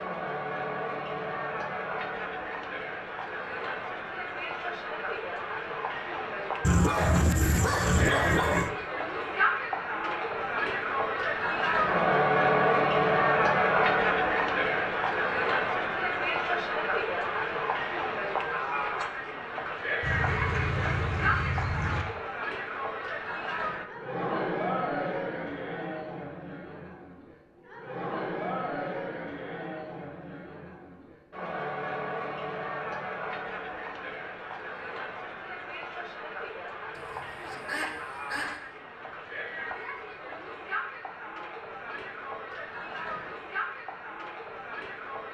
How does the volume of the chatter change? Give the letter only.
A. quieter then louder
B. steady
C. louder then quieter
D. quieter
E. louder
C.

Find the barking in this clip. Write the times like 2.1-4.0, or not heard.
6.6-8.7.